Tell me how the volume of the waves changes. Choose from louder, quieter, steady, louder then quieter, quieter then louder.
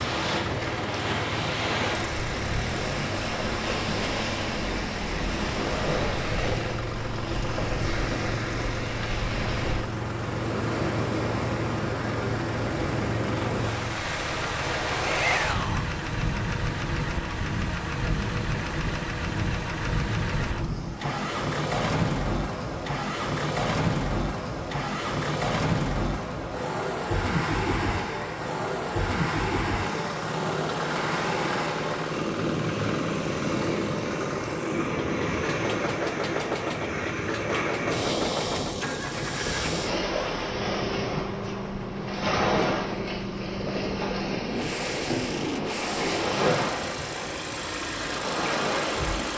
steady.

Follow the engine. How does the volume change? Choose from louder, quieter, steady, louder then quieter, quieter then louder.
steady.